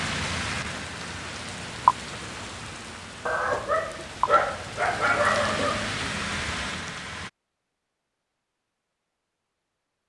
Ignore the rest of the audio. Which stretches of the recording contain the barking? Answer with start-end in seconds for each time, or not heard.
3.2-6.1.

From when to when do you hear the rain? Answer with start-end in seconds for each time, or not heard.
0.0-7.3.